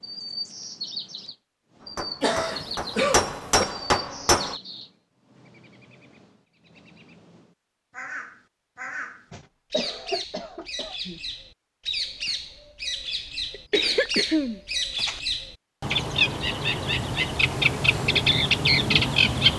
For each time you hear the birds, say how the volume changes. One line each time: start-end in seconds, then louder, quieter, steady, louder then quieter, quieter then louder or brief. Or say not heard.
0.0-19.5 quieter then louder.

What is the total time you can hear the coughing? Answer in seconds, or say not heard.
5 s.